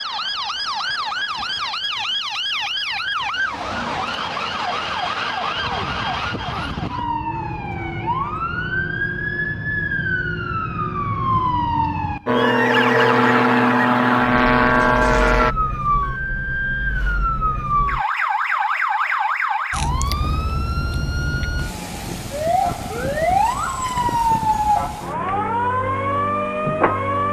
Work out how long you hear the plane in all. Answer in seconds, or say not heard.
3 s.